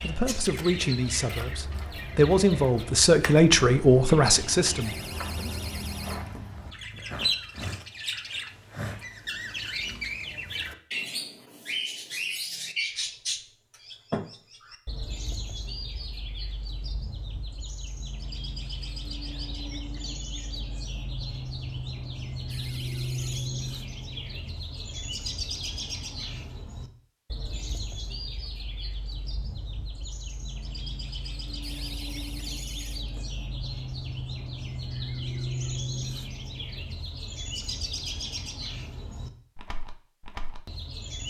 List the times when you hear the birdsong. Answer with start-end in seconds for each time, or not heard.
0.0-41.2.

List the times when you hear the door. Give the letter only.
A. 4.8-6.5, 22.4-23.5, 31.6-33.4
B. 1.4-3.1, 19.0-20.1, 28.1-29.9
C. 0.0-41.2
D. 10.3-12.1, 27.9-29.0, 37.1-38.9
A.